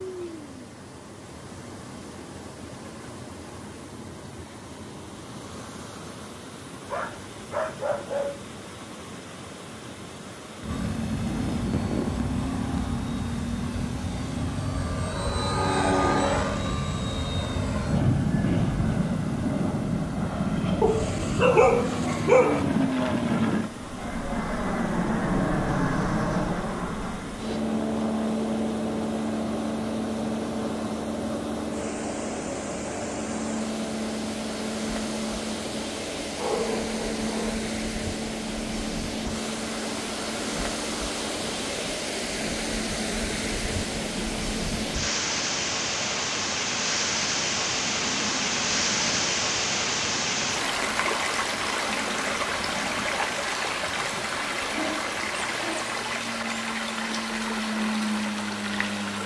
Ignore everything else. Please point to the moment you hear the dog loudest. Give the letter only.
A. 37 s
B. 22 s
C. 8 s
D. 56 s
B.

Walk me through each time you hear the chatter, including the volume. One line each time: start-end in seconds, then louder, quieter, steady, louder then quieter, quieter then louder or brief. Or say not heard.
not heard.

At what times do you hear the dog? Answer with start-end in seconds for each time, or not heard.
6.9-8.4, 20.8-22.6, 36.4-37.6, 54.6-56.0.